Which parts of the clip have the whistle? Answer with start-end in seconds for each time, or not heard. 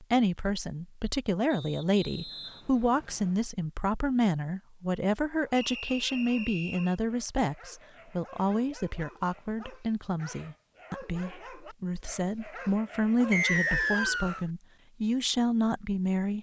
1.5-3.4, 5.5-7.0, 13.3-14.4.